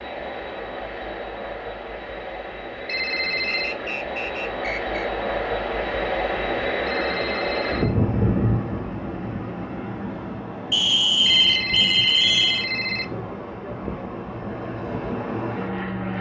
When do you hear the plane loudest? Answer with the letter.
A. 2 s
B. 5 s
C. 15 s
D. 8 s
D.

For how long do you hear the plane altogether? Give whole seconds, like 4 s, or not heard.
16 s.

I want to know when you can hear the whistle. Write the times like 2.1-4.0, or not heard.
3.5-5.1, 10.7-12.7.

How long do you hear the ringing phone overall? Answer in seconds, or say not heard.
4 s.